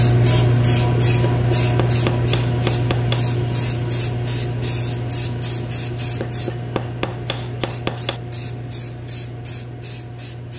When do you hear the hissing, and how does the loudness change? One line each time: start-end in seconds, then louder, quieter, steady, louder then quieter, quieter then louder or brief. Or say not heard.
0.0-10.5 quieter.